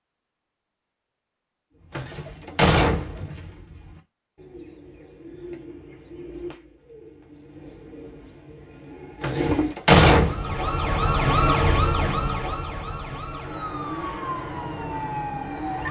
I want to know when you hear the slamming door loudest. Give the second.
10 s.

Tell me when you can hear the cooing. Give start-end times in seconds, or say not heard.
1.7-9.8.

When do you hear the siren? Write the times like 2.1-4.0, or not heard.
10.2-15.8.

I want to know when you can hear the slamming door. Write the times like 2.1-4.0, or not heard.
1.9-3.4, 9.2-10.6.